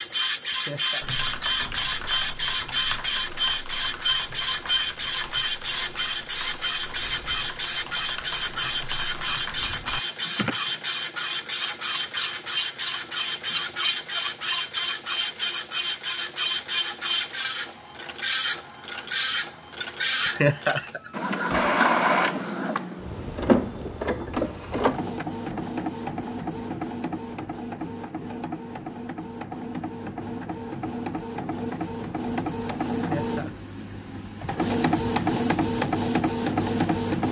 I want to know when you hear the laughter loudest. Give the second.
21 s.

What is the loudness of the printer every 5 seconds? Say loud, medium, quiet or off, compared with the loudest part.
loud, loud, loud, loud, loud, medium, medium, loud.